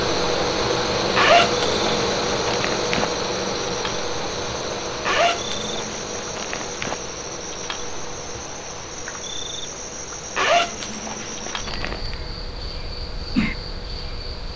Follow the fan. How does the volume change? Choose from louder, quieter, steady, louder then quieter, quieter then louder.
quieter.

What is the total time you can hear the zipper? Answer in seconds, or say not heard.
6 s.